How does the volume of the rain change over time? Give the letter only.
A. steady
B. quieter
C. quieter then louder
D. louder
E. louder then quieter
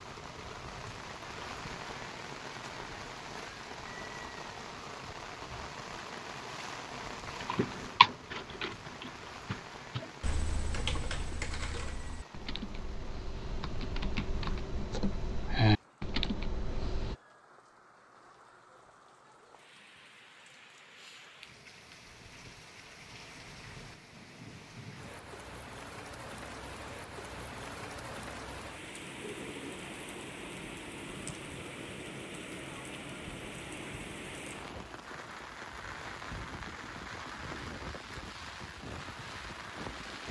C.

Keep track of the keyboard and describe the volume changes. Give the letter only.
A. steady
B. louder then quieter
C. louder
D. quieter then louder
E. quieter
D.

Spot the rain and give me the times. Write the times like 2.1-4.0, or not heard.
0.0-40.2.